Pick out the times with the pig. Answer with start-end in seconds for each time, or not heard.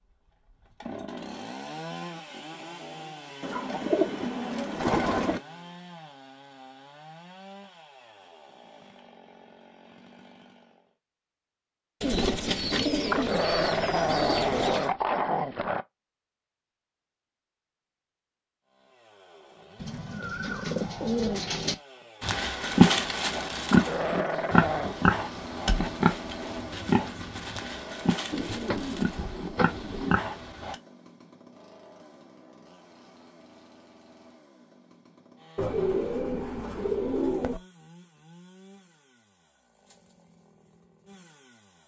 22.2-30.8.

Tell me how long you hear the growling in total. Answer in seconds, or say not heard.
4 s.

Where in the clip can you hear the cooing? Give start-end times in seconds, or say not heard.
3.4-5.4, 12.0-14.9, 19.8-21.8, 28.3-30.1, 35.5-37.6.